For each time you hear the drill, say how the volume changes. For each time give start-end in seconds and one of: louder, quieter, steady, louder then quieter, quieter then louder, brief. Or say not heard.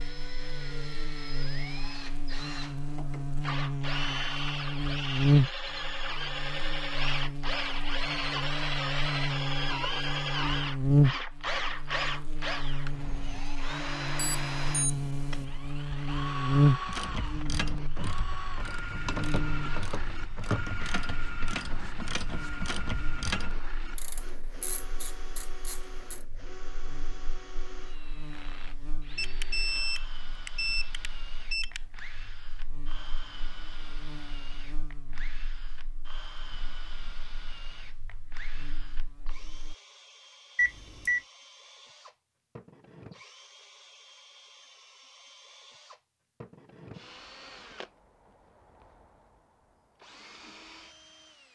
0.0-51.5 quieter.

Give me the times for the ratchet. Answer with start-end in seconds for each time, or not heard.
16.8-26.2.